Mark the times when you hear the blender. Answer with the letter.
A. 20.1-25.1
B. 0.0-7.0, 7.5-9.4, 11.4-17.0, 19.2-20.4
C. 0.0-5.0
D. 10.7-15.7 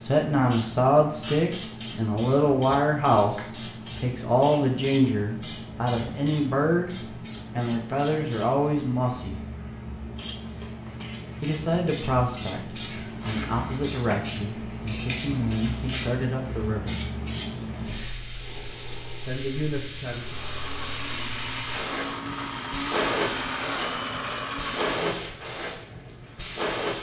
A.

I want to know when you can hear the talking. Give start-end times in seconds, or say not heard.
0.0-7.0, 7.5-9.4, 11.4-17.0, 19.2-20.4.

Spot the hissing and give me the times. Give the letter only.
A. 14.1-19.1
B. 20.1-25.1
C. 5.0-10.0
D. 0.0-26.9
D.